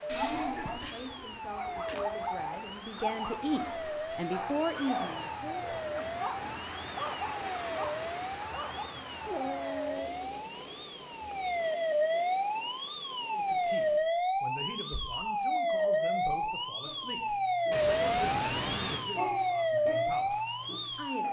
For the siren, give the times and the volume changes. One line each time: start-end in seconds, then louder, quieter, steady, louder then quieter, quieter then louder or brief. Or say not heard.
0.0-21.2 louder.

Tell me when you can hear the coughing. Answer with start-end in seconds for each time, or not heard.
0.1-0.9, 17.7-19.0.